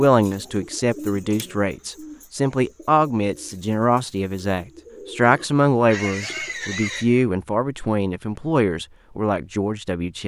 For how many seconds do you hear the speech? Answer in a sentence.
You can hear the speech for 10 seconds altogether.